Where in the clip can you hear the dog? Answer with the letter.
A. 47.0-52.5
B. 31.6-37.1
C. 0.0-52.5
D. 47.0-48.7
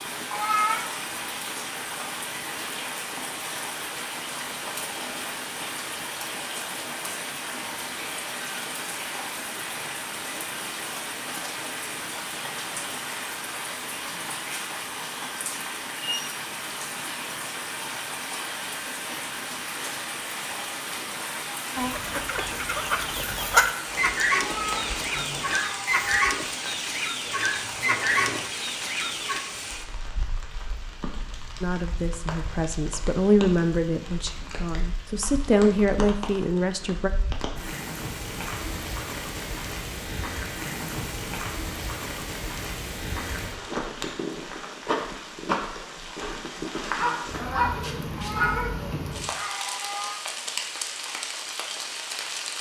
D.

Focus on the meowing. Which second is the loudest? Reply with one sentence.
The volume of the meowing peaks at 1 second.